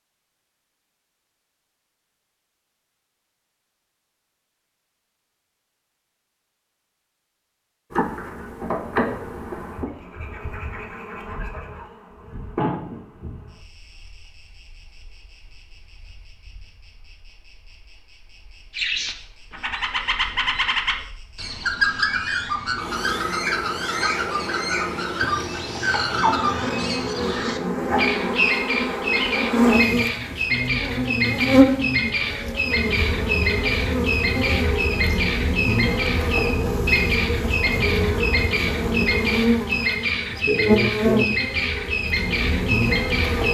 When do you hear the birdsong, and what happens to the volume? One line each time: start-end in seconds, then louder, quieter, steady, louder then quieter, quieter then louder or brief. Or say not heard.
18.7-43.4 steady.